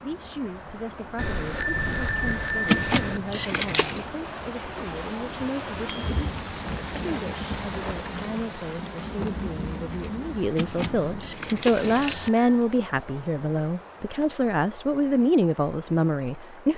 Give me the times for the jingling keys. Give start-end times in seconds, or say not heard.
2.6-4.0, 10.6-12.3.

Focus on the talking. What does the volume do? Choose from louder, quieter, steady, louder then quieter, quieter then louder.
louder.